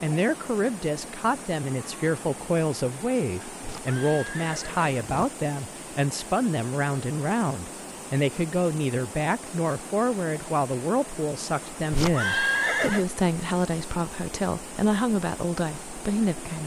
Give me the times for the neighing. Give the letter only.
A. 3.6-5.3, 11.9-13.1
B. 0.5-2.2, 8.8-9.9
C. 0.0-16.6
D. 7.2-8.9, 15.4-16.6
A.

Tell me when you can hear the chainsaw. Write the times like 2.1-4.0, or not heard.
not heard.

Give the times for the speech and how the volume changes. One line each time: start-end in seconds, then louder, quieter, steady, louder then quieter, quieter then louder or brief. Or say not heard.
0.0-16.6 steady.